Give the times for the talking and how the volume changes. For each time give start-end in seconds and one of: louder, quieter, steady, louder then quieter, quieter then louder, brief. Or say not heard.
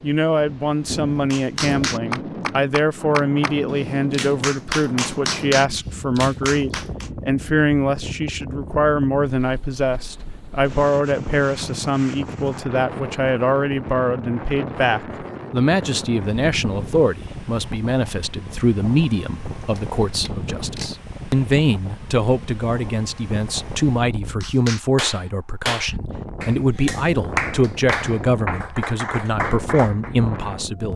0.0-30.9 steady.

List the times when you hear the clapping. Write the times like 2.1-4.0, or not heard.
1.3-7.1, 24.4-30.1.